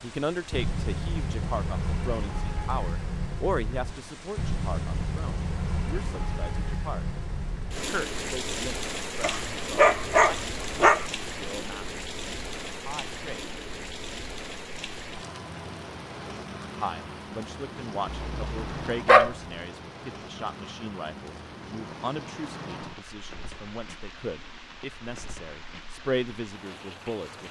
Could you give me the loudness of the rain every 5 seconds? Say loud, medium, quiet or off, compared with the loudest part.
loud, loud, loud, medium, medium, medium.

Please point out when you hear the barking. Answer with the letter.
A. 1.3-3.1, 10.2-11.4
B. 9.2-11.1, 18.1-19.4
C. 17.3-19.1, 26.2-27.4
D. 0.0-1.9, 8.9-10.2
B.